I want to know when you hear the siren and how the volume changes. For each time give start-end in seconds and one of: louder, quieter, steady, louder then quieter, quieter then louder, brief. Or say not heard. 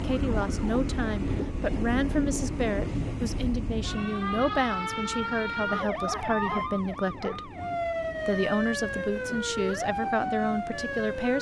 0.0-11.3 louder.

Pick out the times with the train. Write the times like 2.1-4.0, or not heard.
0.0-11.3.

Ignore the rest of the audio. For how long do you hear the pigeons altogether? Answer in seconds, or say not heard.
not heard.